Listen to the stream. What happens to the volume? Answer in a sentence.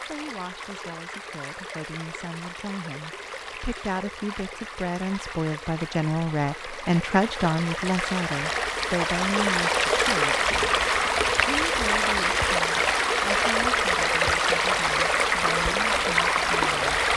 The volume of the stream goes up.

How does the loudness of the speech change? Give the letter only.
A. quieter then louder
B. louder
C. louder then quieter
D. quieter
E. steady
C.